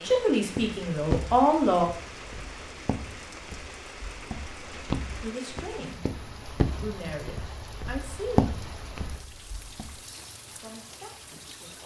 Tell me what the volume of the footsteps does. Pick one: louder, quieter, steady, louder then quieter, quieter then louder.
quieter then louder.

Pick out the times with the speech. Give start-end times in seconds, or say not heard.
0.0-1.9, 5.2-6.0, 6.8-8.5, 10.4-11.8.